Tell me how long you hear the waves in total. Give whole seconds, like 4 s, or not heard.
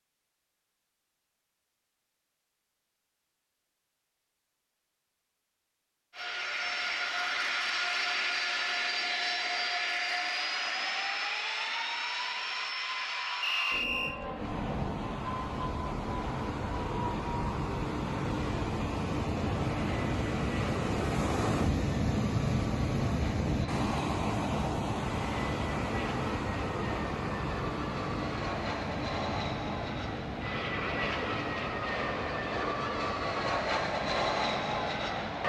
21 s.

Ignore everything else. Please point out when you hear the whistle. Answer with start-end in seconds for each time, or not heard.
13.4-14.2.